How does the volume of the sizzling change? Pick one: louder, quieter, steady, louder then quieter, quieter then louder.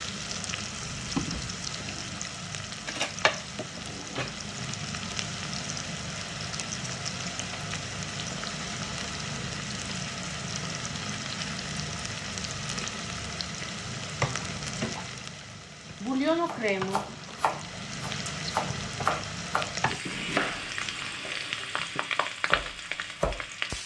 steady.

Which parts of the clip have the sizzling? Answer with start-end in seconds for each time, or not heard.
0.0-23.8.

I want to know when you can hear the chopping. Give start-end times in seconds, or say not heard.
16.4-23.4.